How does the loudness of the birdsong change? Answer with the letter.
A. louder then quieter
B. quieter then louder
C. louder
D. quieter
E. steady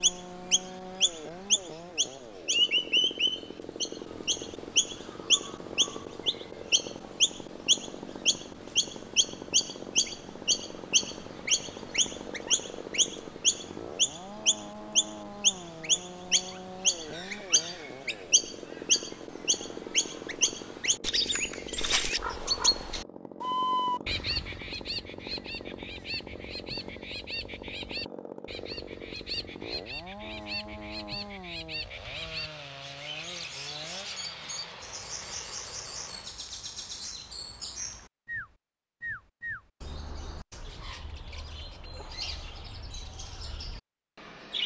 D.